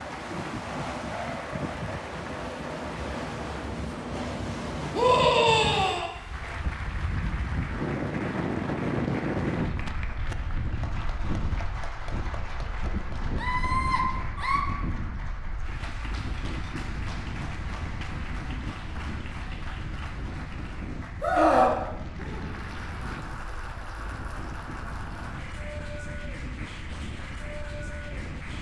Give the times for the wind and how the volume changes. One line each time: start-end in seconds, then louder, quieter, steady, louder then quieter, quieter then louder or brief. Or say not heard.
0.0-28.5 quieter.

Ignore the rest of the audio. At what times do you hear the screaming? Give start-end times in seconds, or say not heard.
5.0-6.1, 13.3-14.7, 21.2-22.4.